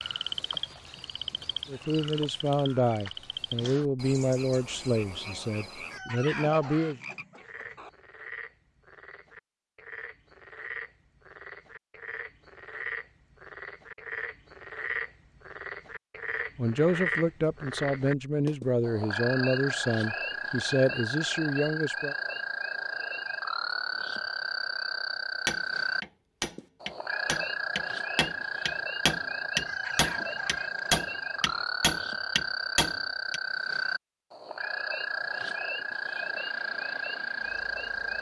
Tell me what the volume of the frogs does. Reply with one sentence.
The volume of the frogs goes up.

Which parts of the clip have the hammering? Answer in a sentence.
You can hear the hammering from 25.4 to 33.4 s.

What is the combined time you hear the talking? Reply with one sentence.
You can hear the talking for 11 seconds altogether.